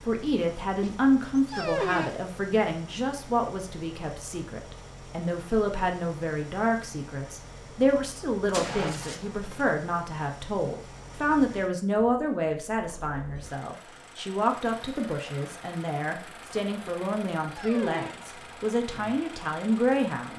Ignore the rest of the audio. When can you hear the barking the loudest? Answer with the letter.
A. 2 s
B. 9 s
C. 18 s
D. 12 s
A.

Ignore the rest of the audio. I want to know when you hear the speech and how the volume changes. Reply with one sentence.
You can hear the speech from 0.1 to 20.3 s, at a steady volume.